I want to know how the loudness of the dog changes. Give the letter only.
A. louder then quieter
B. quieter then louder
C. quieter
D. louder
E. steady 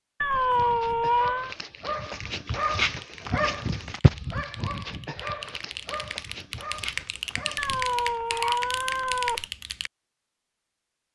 A.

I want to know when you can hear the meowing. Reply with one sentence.
You can hear the meowing from 0.2 to 1.6 s and from 7.5 to 9.4 s.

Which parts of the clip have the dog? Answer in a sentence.
The dog can be heard from 0.3 to 8.6 s.